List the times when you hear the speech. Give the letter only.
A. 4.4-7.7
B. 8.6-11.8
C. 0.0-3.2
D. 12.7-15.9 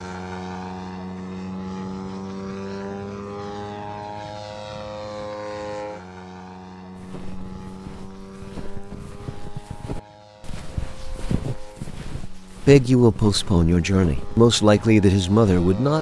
D.